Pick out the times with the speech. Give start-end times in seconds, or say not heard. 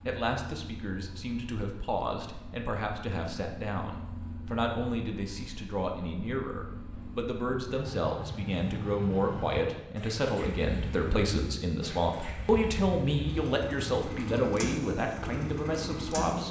0.1-16.4.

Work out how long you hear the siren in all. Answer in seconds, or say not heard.
not heard.